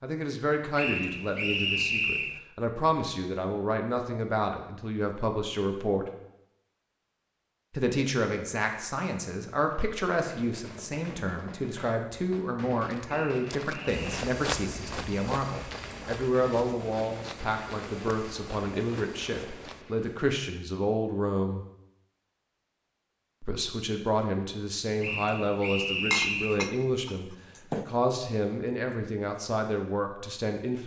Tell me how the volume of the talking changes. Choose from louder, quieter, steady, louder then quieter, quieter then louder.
steady.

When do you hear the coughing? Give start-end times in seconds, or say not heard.
not heard.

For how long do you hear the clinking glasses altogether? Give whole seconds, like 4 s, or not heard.
2 s.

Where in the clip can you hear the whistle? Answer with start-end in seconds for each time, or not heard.
0.8-2.4, 13.1-14.2, 25.0-26.6.